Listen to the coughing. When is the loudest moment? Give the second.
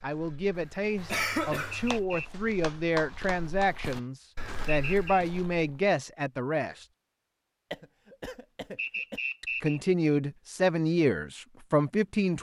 1 s.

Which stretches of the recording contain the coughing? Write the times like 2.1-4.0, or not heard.
0.6-2.0, 7.7-9.2.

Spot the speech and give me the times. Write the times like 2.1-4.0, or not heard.
0.0-6.8, 9.4-12.3.